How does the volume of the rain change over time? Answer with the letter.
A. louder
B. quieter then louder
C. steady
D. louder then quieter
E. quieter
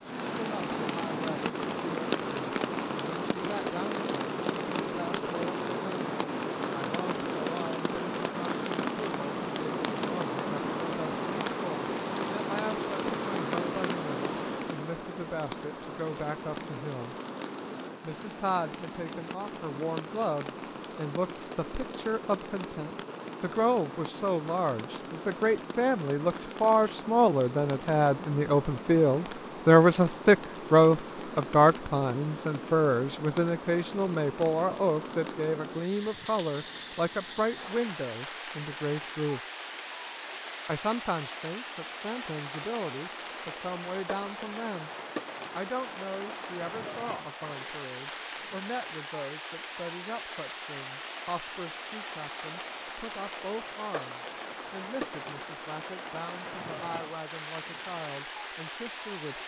E.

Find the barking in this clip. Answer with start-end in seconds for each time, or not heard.
not heard.